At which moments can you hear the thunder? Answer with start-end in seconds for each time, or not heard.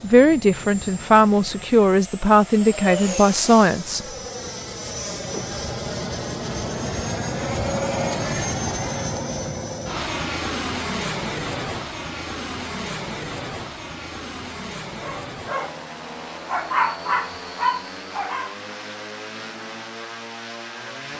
not heard.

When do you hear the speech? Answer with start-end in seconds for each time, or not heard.
0.0-4.0.